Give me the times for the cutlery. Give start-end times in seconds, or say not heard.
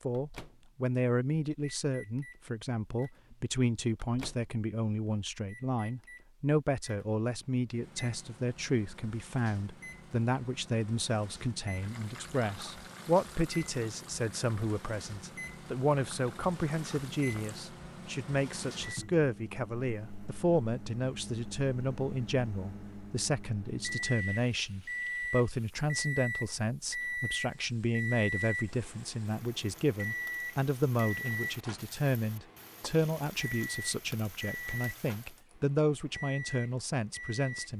not heard.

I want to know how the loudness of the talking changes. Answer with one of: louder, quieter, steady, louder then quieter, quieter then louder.
steady.